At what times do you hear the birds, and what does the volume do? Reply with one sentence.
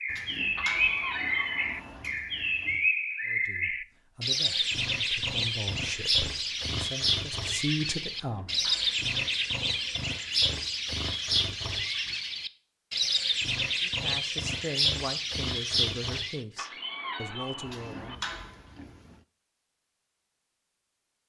You can hear the birds from 0.0 to 16.4 s, at a steady volume.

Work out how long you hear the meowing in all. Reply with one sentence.
The meowing can be heard for 3 seconds in total.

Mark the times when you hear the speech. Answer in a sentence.
You can hear the speech from 3.2 to 8.6 s and from 13.8 to 18.2 s.